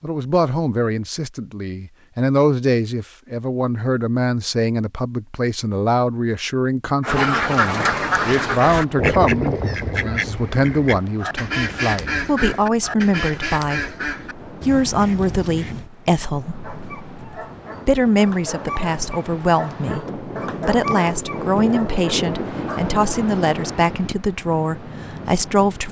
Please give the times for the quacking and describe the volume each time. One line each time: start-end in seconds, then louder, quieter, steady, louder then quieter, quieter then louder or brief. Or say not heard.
7.0-15.9 quieter.